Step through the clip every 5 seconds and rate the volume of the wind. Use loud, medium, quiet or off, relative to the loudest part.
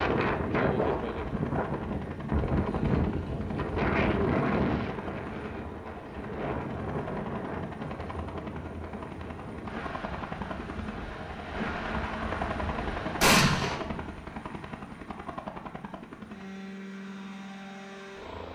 loud, medium, medium, off.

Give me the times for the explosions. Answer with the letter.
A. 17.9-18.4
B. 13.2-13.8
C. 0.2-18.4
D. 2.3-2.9
B.